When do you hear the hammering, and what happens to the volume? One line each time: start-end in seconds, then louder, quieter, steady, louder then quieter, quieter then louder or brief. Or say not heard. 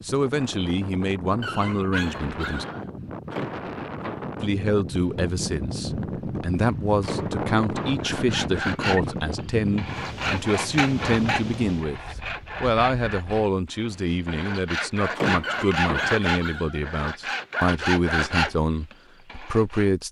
not heard.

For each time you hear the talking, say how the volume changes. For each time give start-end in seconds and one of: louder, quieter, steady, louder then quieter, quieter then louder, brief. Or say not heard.
0.0-2.6 brief
4.4-20.0 steady.